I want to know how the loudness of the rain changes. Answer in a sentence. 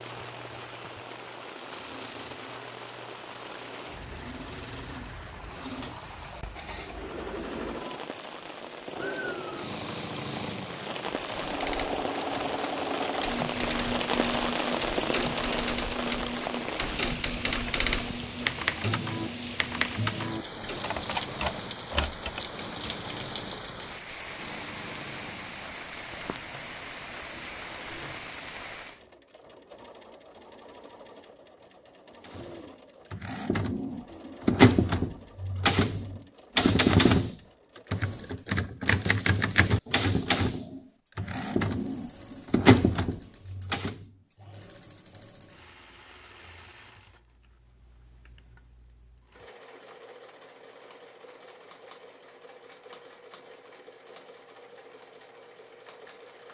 The loudness of the rain goes up, then down.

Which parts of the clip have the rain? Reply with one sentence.
You can hear the rain from 0.0 to 29.0 s.